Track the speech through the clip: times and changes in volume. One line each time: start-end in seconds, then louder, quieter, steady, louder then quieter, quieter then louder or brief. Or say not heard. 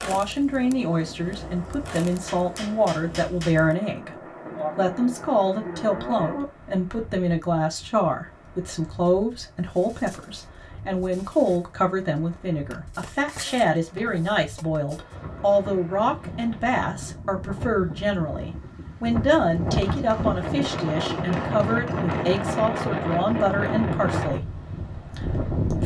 0.1-25.8 steady.